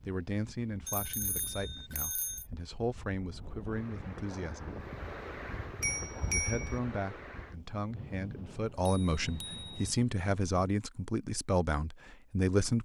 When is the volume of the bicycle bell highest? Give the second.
6 s.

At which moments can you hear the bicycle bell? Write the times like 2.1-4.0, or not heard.
0.8-2.5, 5.0-6.8, 8.8-9.9.